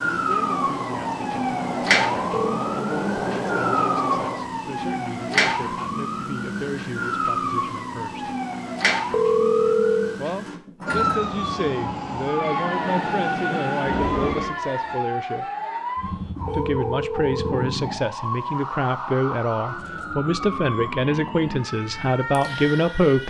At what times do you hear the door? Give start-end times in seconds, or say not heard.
not heard.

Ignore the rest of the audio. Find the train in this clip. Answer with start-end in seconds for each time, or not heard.
0.0-4.5, 10.8-14.6.